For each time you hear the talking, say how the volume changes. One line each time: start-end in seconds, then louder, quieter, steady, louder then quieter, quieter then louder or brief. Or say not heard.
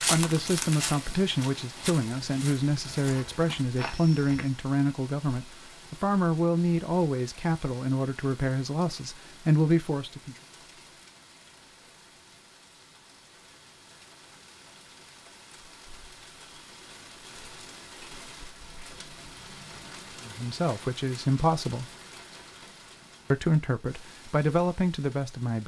0.0-10.3 steady
20.2-21.9 brief
23.3-25.6 brief.